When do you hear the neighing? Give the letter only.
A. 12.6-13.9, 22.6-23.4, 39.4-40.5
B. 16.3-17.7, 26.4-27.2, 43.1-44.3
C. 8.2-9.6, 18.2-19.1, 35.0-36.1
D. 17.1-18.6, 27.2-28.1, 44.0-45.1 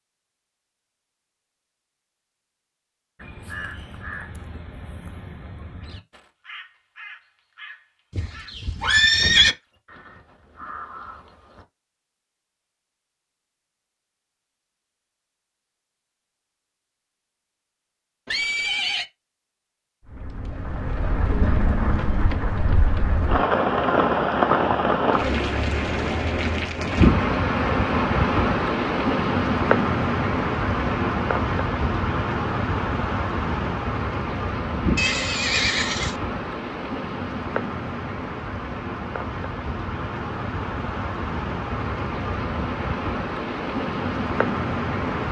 C.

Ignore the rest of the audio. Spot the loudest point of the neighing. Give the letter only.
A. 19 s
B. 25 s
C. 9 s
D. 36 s
C.